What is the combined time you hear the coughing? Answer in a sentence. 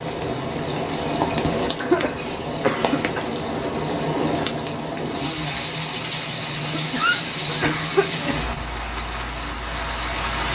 The coughing can be heard for 3 seconds in total.